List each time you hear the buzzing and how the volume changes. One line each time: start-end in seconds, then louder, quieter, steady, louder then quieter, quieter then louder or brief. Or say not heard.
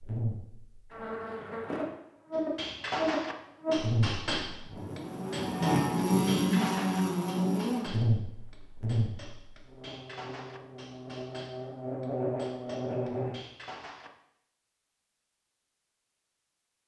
0.0-13.3 louder then quieter.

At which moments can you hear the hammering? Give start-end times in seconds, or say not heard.
2.3-14.1.